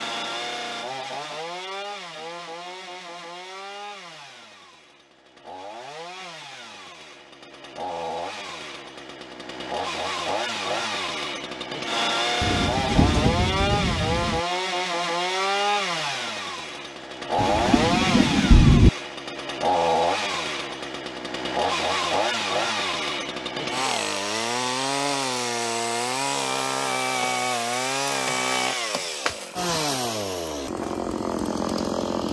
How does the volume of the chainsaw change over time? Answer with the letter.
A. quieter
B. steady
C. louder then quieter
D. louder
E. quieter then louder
D.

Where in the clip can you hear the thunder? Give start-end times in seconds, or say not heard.
12.4-14.4, 17.4-18.9.